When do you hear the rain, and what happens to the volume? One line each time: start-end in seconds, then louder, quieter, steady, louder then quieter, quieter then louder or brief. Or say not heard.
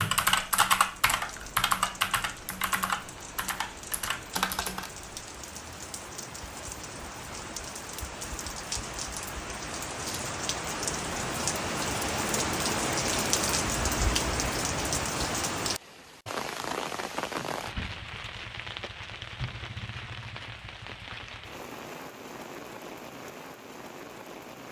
0.0-24.6 louder then quieter.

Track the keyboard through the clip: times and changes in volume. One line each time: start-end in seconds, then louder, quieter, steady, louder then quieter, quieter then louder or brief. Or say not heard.
0.0-5.0 quieter.